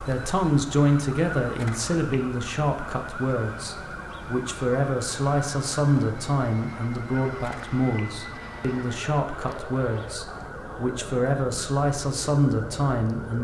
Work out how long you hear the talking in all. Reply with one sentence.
You can hear the talking for 13 seconds altogether.